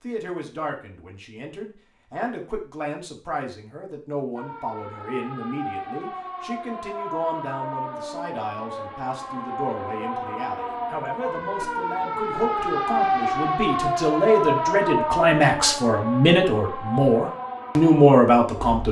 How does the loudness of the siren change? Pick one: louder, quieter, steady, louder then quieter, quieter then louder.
louder then quieter.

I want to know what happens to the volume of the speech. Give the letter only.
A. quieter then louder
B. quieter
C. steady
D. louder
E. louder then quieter
D.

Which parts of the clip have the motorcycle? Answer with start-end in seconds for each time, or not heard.
not heard.